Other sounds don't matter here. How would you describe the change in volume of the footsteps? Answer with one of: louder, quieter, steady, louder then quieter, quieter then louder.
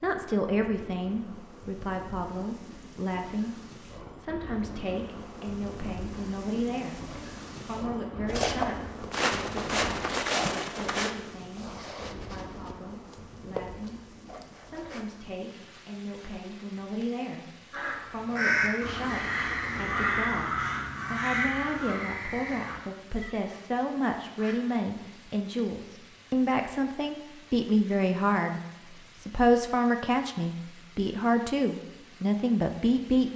quieter then louder.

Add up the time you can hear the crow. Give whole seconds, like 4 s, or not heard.
7 s.